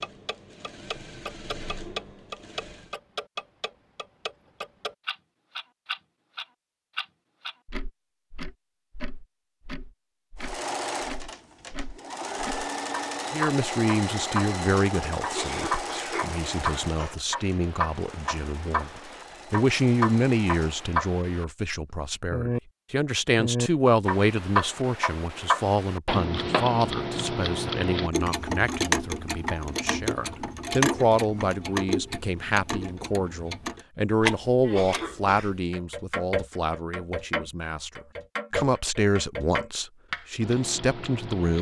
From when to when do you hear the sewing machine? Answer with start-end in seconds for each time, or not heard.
0.0-3.0, 10.3-20.9.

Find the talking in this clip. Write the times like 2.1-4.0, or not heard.
13.3-41.5.